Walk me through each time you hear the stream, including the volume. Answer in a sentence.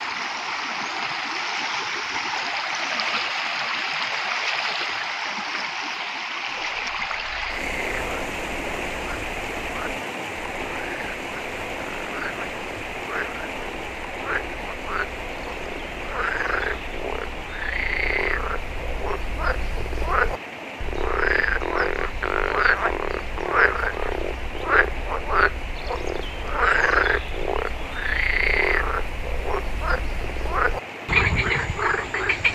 The stream can be heard from 0.0 to 32.5 s, getting quieter.